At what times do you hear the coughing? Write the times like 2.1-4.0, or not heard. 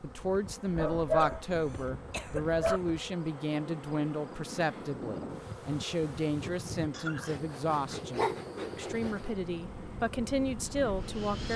1.1-2.8, 6.9-7.5.